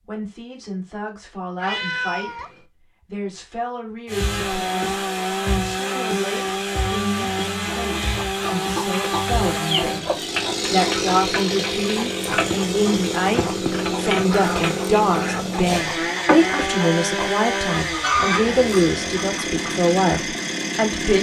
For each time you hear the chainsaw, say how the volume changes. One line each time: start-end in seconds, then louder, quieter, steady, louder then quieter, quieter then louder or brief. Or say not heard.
4.0-21.1 steady.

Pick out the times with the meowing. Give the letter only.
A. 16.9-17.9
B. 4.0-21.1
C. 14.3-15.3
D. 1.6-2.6
D.